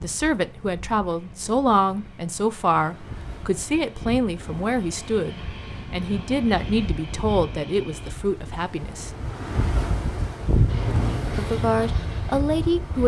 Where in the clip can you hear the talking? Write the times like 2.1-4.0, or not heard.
0.0-9.1, 11.3-13.0.